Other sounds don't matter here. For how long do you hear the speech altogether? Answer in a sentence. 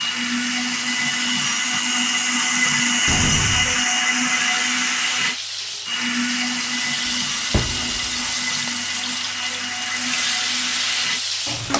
You can't hear the speech here.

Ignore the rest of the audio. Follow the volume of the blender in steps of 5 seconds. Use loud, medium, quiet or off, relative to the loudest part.
loud, medium, medium.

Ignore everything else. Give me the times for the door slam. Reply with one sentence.
You can hear the door slam from 3.0 to 3.9 s and from 7.5 to 8.1 s.